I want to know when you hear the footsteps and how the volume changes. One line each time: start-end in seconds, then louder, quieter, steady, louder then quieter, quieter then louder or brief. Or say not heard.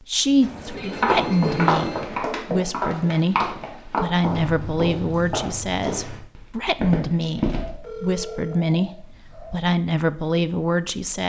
0.9-7.7 quieter.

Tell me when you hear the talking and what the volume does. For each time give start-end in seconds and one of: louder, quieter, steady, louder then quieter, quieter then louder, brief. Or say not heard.
0.1-11.2 steady.